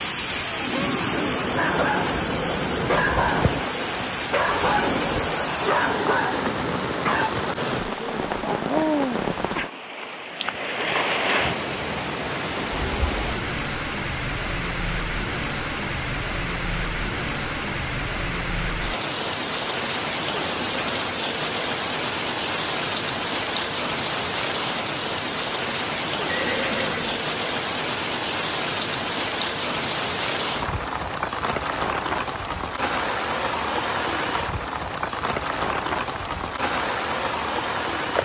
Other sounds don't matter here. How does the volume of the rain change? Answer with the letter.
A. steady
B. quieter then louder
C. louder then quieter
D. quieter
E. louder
A.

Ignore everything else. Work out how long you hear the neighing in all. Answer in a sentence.
The neighing can be heard for 2 seconds in total.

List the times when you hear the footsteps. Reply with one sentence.
You can't hear the footsteps here.